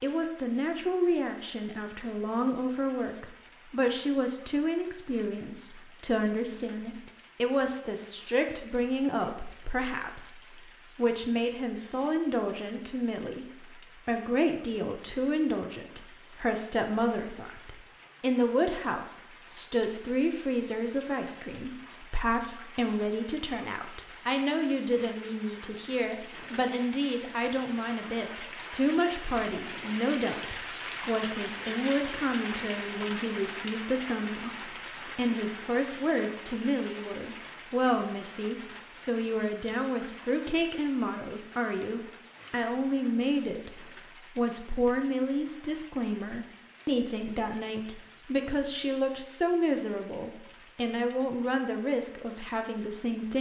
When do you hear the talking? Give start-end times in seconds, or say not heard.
0.0-53.3.